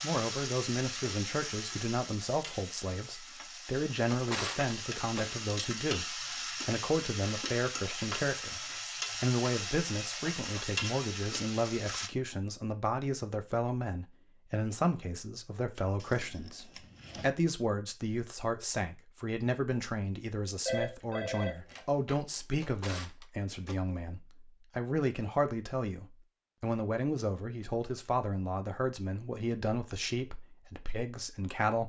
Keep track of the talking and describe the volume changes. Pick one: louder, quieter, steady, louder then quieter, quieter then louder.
steady.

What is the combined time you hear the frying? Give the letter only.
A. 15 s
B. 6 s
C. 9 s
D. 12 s
D.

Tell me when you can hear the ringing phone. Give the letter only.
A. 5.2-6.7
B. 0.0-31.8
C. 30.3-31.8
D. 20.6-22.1
D.